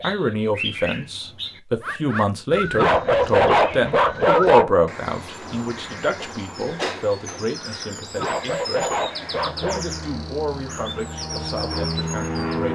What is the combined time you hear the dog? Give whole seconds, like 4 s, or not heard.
4 s.